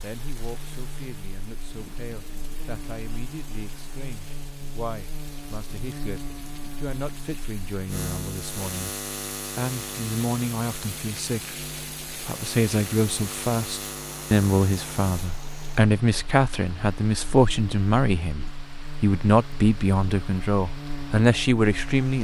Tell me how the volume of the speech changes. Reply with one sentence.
The volume of the speech goes up.